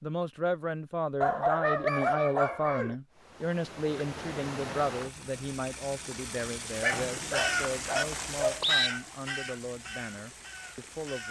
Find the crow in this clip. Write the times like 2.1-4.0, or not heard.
7.2-11.2.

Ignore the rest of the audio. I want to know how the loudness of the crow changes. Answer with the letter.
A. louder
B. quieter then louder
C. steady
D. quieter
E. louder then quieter
D.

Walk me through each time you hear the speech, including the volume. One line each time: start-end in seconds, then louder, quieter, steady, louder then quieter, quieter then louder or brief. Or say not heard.
0.0-11.2 quieter.